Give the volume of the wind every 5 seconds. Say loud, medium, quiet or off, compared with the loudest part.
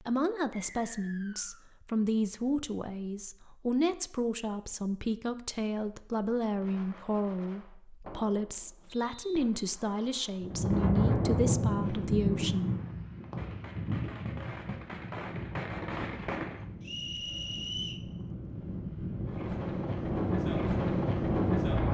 off, off, loud, medium, loud.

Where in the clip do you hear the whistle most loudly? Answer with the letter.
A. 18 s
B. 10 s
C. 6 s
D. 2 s
A.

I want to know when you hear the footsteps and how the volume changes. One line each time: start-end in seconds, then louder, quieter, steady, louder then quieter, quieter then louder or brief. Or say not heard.
not heard.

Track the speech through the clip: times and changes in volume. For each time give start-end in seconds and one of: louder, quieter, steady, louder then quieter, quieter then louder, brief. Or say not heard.
0.0-12.7 steady.